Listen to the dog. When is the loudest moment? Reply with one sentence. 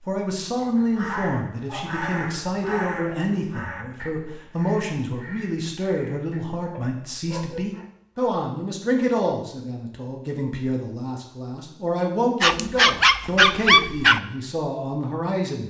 The volume of the dog peaks at 14 seconds.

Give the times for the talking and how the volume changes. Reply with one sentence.
You can hear the talking from 0.0 to 15.6 s, at a steady volume.